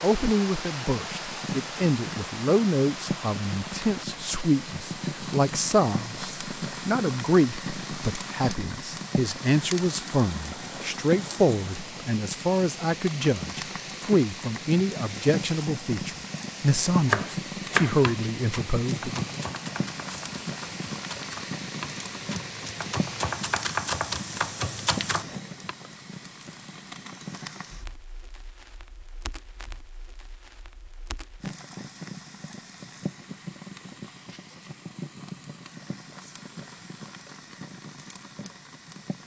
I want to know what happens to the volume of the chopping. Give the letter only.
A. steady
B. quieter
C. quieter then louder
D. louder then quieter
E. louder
C.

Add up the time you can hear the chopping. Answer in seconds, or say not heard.
9 s.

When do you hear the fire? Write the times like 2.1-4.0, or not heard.
0.1-39.2.